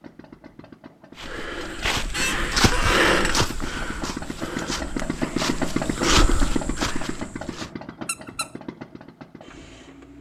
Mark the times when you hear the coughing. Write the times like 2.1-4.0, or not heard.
not heard.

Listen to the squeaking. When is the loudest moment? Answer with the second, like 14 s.
3 s.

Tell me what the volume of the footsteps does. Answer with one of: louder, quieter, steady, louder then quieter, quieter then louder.
quieter then louder.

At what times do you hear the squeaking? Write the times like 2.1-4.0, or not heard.
1.9-3.4, 8.1-8.5.